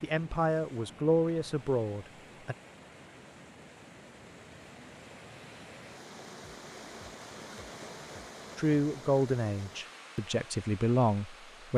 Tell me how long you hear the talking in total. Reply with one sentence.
The talking can be heard for 6 seconds in total.